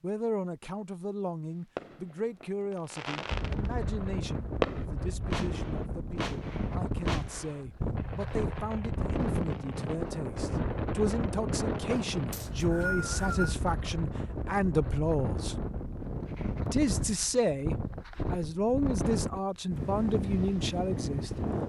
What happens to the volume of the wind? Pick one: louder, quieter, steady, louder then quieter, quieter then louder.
steady.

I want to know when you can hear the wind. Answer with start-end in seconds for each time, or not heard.
3.2-21.6.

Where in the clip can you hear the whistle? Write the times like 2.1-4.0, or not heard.
12.3-13.6.